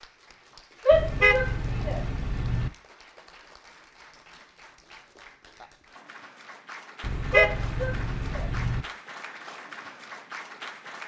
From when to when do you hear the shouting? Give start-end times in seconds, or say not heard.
0.8-2.0, 7.3-8.4.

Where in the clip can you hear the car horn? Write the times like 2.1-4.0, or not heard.
0.9-2.7, 7.0-8.8.